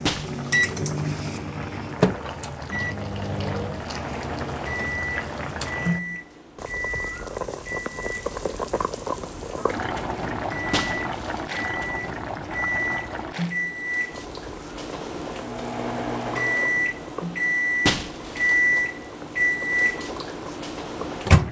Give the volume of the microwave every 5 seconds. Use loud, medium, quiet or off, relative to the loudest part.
loud, medium, medium, loud, loud.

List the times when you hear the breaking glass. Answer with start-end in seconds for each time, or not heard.
0.1-0.8, 10.7-11.4, 17.9-18.6.